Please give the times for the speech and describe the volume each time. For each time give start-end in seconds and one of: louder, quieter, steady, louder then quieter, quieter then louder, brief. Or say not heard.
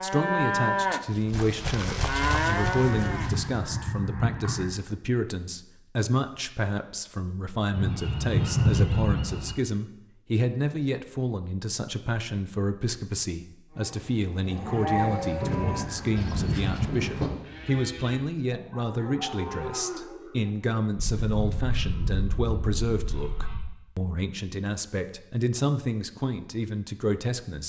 0.0-27.6 steady.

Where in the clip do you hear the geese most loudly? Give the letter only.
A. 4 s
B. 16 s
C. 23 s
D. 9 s
D.